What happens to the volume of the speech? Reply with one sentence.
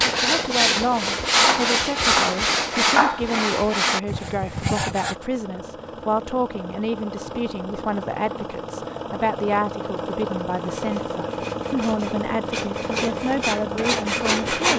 The loudness of the speech stays about the same.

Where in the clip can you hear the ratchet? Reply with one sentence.
The ratchet can't be heard in this clip.